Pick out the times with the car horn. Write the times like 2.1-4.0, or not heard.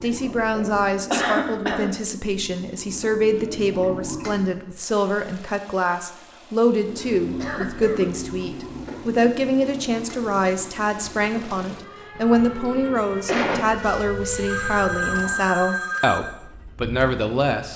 not heard.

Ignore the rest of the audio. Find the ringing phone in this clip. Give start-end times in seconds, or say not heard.
14.4-16.2.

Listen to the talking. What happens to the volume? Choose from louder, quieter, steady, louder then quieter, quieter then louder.
steady.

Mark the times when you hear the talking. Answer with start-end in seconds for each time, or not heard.
0.0-17.7.